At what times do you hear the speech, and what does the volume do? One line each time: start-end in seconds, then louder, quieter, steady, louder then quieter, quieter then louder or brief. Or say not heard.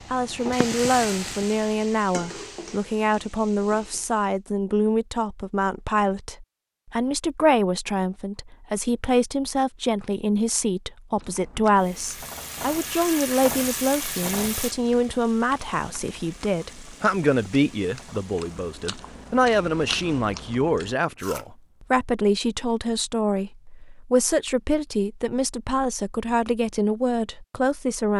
0.1-28.1 steady.